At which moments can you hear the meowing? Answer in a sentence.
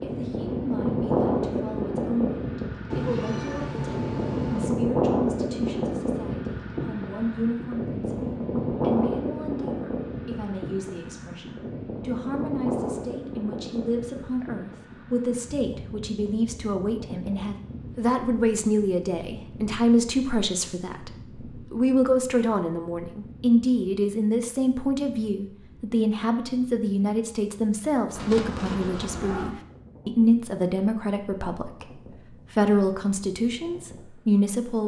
The meowing can be heard from 2.9 to 4.8 s and from 28.1 to 29.6 s.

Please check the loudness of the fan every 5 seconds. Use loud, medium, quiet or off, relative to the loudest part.
loud, loud, medium, quiet, quiet, quiet, quiet.